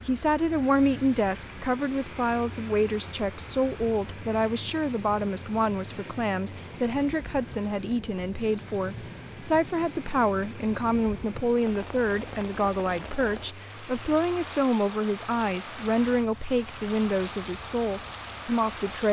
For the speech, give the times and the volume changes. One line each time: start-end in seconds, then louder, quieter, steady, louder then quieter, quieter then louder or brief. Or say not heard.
0.1-19.0 steady.